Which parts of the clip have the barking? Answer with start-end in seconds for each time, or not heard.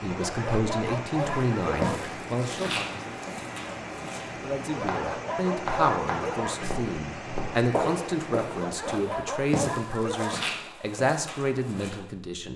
0.1-2.1, 4.7-6.8, 8.5-10.7.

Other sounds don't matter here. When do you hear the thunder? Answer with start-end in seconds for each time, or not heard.
not heard.